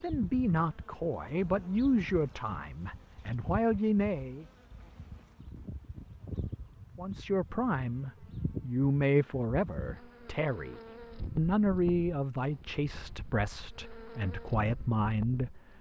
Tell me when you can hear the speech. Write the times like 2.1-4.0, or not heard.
0.0-4.5, 7.0-15.6.